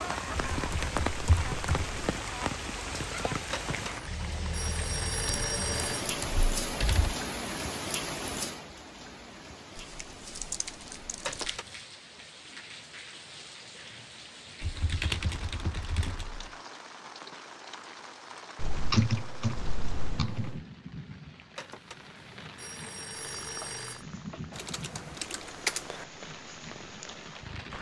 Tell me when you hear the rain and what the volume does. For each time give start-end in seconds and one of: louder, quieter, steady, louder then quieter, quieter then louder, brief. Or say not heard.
0.0-27.7 quieter.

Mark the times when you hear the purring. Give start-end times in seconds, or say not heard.
23.1-27.7.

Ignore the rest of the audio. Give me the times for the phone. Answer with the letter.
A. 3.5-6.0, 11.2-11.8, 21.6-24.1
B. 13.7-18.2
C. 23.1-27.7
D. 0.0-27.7
A.